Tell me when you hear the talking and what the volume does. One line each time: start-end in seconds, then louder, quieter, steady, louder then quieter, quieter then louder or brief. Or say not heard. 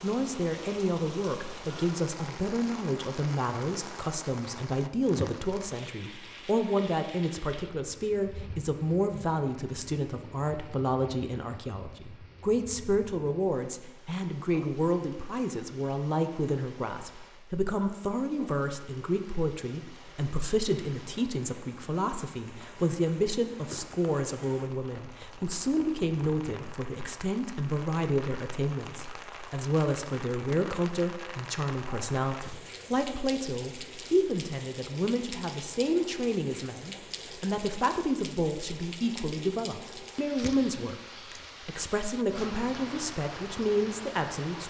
0.0-41.0 steady
41.6-44.6 brief.